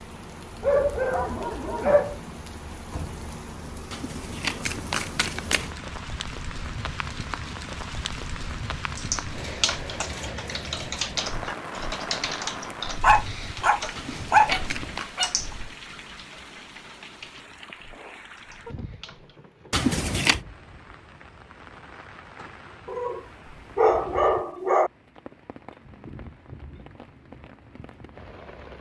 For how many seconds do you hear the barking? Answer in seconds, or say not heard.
6 s.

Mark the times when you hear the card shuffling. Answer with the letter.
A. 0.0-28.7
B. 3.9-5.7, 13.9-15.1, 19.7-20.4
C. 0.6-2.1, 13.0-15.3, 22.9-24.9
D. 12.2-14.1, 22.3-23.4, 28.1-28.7
B.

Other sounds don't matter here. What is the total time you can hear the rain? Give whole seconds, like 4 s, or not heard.
29 s.